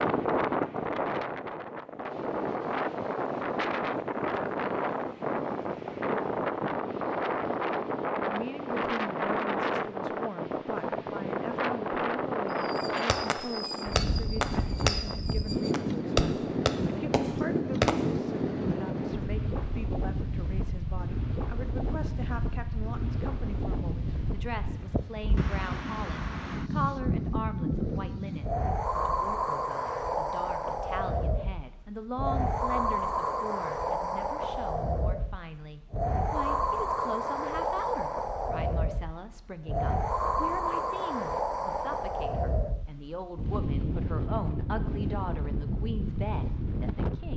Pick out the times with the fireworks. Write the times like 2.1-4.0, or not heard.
12.6-18.1.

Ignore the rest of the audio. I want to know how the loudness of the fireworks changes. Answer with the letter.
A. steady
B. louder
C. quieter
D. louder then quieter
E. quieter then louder
D.